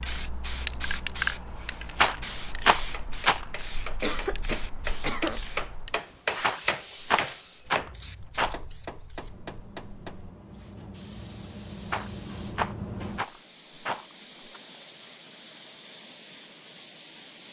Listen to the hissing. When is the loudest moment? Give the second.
1 s.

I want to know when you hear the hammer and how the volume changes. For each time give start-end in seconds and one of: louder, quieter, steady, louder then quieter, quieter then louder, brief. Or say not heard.
2.8-10.3 louder then quieter.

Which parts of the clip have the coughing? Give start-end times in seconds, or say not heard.
4.0-5.4.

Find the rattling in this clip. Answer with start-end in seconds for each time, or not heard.
1.9-3.5, 6.4-8.6, 11.8-14.6.